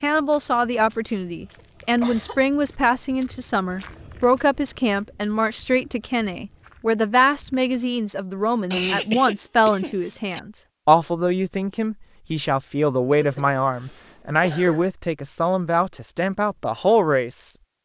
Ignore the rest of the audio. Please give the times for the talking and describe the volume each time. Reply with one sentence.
The talking can be heard from 0.0 to 17.6 s, at a steady volume.